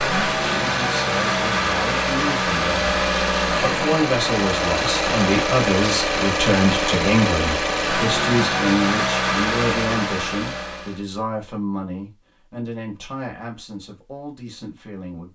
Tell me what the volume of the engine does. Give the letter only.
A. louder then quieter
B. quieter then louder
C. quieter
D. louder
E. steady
E.